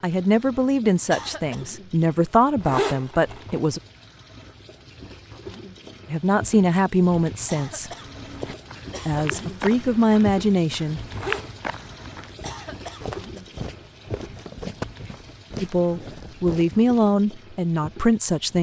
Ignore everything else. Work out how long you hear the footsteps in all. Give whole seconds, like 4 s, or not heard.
9 s.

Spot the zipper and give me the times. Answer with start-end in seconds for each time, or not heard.
2.6-3.5, 11.1-11.8.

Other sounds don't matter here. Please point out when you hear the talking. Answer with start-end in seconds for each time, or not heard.
0.0-3.8, 6.0-7.9, 9.1-11.0, 15.6-18.5.